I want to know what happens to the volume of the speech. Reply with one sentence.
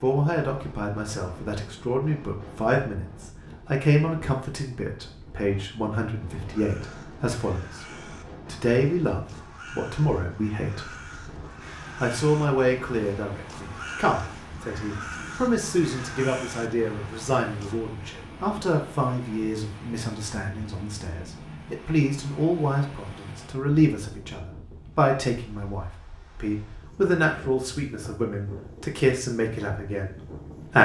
The loudness of the speech stays about the same.